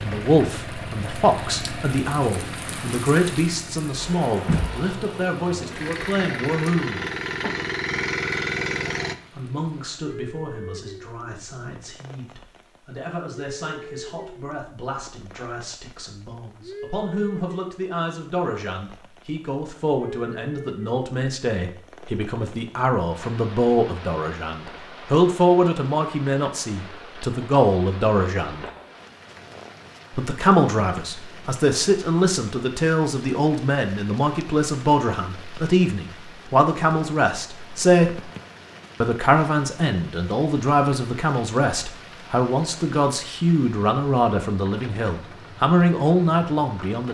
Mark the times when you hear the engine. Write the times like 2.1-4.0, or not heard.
0.0-9.2.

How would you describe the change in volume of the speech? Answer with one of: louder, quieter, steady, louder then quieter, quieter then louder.
quieter then louder.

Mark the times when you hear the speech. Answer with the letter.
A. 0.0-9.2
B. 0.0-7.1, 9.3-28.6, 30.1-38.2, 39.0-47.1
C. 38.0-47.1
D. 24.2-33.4
B.